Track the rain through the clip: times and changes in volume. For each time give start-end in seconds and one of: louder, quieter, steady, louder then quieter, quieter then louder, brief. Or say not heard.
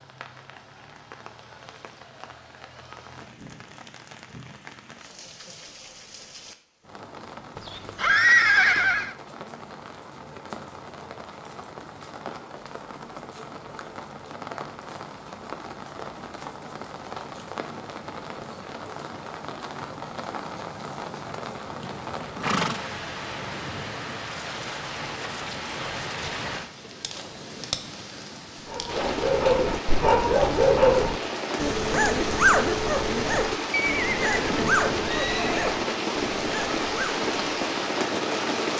0.0-38.7 louder.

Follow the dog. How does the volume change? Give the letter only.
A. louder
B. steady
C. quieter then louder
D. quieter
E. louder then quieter
D.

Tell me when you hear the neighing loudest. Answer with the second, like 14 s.
8 s.